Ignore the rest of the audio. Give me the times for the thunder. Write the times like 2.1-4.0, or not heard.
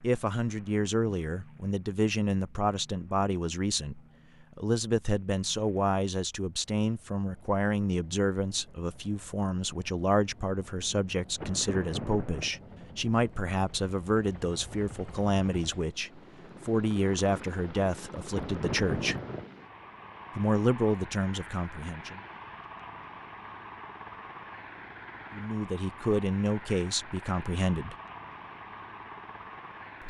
11.3-12.5, 18.3-19.4.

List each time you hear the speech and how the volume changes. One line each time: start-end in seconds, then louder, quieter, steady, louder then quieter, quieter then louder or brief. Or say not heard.
0.0-19.1 steady
20.4-22.2 brief
25.3-27.9 brief.